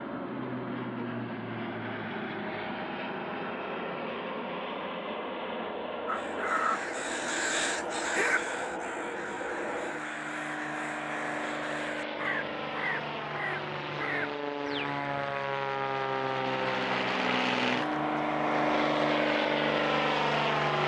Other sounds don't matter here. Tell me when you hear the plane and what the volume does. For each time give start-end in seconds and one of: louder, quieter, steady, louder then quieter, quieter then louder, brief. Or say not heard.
0.0-20.8 louder.